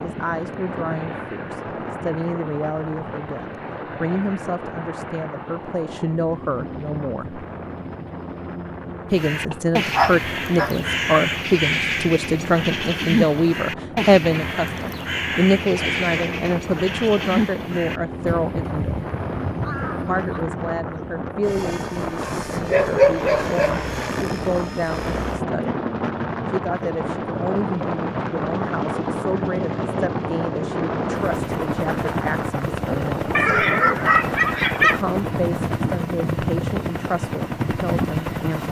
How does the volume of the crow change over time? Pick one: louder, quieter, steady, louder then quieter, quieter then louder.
quieter.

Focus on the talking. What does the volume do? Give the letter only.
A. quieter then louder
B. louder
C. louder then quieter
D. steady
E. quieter
C.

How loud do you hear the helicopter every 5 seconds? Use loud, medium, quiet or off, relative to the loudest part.
medium, medium, medium, medium, medium, loud, loud, loud.